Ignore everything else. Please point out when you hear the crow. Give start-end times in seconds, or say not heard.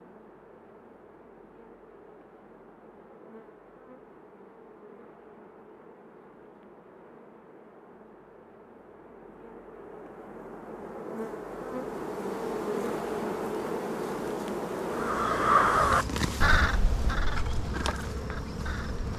14.9-19.1.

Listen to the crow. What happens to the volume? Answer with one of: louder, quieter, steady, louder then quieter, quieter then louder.
quieter.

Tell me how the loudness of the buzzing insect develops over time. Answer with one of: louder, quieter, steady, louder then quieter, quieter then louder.
louder.